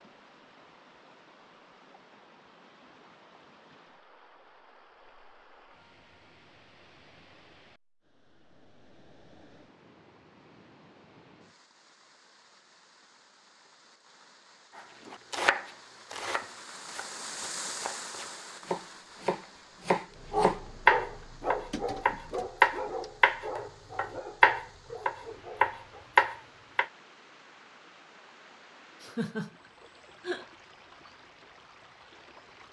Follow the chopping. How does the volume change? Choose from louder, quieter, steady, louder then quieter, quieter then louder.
louder.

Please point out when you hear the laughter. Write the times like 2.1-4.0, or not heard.
29.0-30.4.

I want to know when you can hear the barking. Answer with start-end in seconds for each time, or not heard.
20.1-26.1.